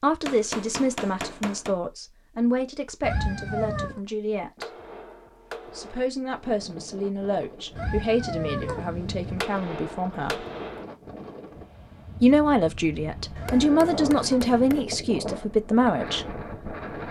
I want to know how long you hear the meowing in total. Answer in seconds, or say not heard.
4 s.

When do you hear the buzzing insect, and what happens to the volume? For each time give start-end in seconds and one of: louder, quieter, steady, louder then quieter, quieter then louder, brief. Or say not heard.
not heard.